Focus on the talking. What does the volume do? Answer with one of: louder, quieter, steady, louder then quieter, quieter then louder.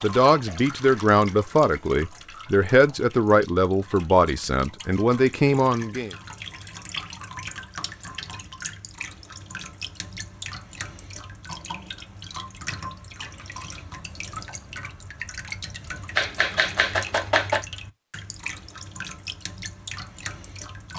steady.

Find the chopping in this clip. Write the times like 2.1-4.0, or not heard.
16.1-17.6.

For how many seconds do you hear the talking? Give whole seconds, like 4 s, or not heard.
6 s.